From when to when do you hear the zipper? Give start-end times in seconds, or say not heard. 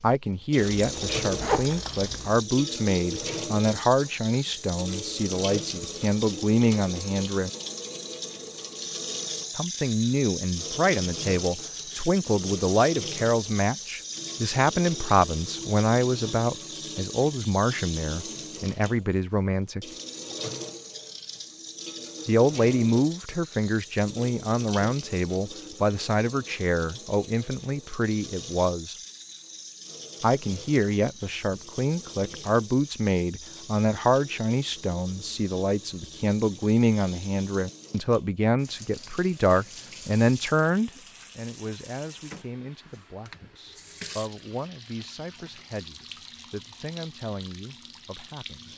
0.6-2.5.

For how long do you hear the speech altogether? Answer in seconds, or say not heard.
43 s.